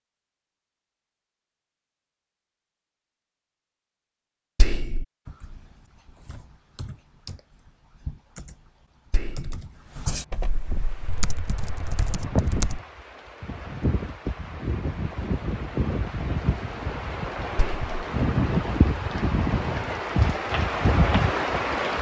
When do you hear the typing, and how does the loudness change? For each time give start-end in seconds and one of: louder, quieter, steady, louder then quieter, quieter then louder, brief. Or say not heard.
5.2-12.8 louder.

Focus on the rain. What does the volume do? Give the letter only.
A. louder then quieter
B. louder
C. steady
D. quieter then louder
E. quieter
B.